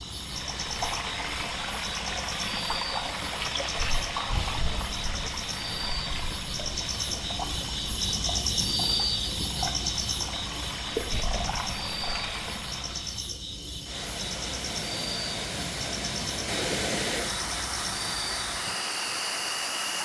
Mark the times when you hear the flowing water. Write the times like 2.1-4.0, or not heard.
0.0-19.9.